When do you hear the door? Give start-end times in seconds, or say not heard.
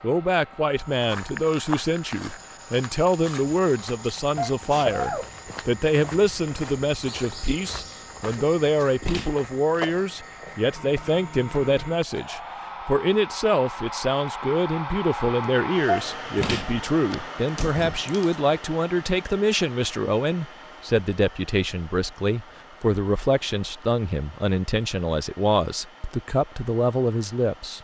9.0-9.8, 16.4-18.4.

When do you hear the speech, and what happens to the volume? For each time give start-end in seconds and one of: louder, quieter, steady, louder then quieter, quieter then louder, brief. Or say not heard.
0.0-27.7 steady.